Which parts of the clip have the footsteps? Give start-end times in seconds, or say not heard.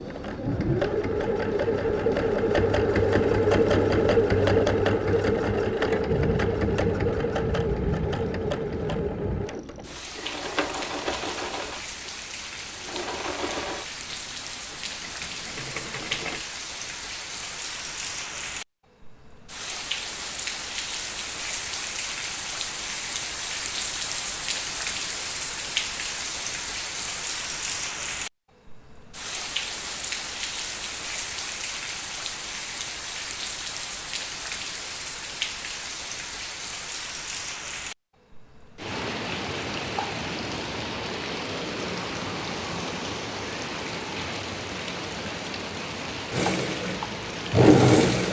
not heard.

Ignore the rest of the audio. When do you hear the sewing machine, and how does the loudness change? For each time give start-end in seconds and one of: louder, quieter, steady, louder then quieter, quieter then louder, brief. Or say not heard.
0.0-16.4 quieter
46.3-48.2 brief.